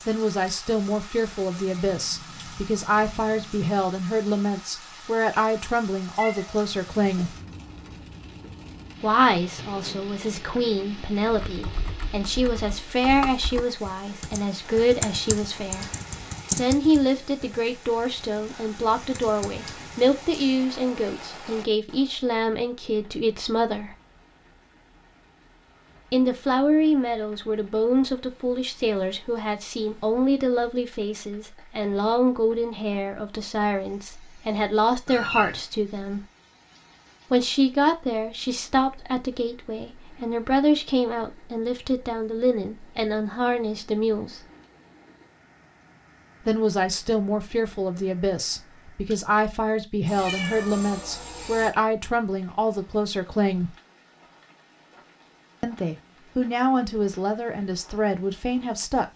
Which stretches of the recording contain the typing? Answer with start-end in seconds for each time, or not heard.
11.3-19.6.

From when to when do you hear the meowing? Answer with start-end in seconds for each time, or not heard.
6.2-7.7, 35.0-35.6, 50.0-51.7.